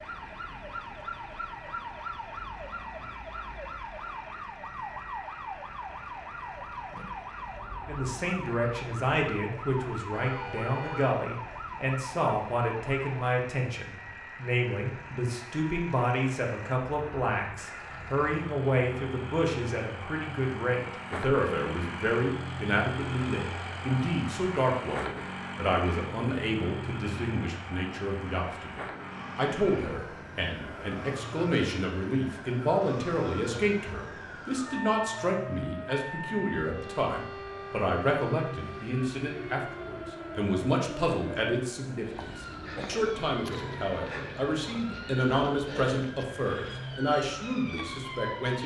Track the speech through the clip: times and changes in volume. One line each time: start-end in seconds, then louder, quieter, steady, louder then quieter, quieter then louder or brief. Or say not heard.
7.8-48.6 steady.